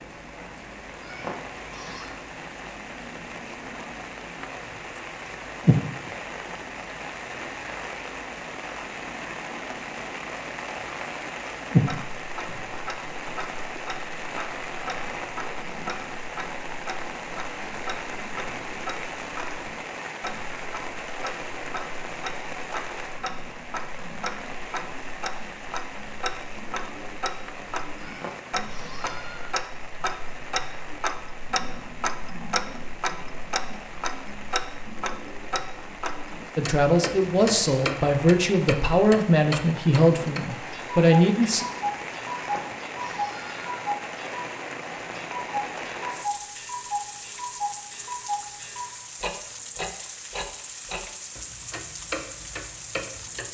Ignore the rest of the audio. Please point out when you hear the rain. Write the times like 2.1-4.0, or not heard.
0.0-53.5.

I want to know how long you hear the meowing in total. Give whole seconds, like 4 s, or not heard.
4 s.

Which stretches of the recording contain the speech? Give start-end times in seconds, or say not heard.
36.5-41.6.